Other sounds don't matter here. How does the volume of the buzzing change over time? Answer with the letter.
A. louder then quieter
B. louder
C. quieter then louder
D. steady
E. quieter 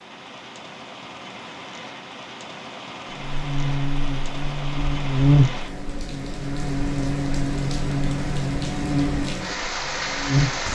A.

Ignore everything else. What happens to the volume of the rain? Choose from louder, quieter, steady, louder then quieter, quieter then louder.
louder.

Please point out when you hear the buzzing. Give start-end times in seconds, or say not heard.
3.2-10.7.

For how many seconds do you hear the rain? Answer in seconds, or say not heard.
11 s.